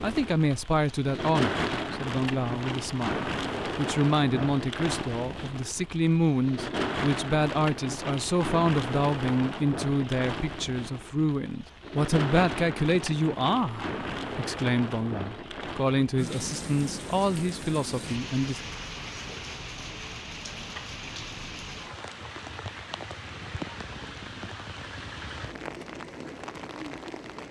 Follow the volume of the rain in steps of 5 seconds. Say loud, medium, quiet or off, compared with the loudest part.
loud, loud, loud, medium, medium, medium.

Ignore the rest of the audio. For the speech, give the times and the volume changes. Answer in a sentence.
You can hear the speech from 0.0 to 18.6 s, at a steady volume.